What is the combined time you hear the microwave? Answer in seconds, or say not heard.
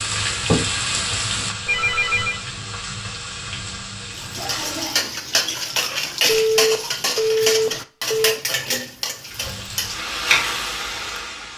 not heard.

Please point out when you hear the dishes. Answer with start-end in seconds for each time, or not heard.
4.2-10.1.